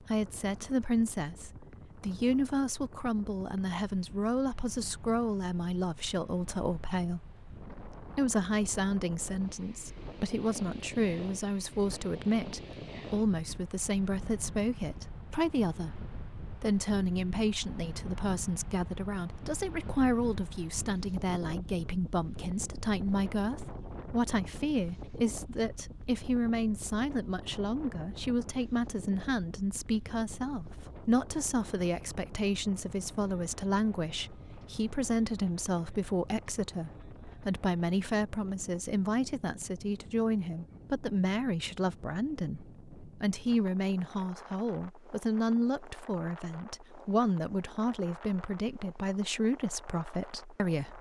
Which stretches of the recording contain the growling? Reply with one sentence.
The growling can't be heard in this clip.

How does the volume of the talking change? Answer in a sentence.
The loudness of the talking stays about the same.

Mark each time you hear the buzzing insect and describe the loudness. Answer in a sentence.
You can't hear the buzzing insect here.